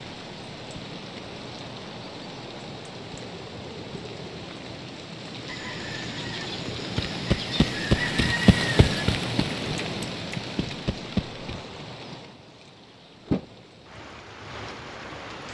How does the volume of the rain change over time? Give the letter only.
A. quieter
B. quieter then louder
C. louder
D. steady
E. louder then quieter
E.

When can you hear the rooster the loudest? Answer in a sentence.
The loudest moment of the rooster is at 8 seconds.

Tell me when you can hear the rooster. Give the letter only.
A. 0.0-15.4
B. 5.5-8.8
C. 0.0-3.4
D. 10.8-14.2
B.